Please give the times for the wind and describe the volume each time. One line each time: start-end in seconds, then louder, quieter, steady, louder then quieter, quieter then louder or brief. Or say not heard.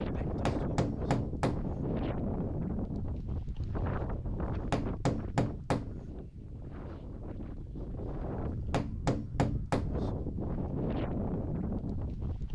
0.0-12.5 quieter then louder.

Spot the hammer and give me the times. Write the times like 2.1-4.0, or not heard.
0.2-1.8, 4.5-6.0, 8.4-10.0.